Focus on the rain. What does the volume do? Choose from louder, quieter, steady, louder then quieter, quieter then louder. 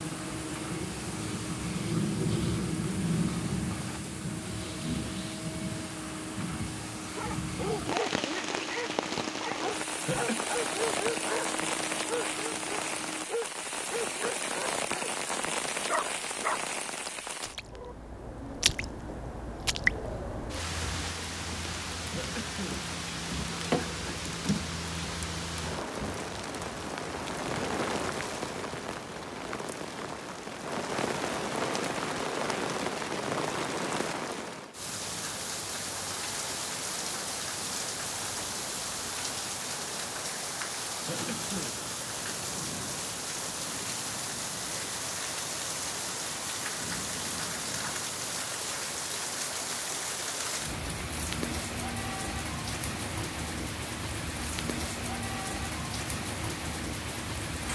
steady.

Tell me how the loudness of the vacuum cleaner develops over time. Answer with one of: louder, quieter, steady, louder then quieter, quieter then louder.
steady.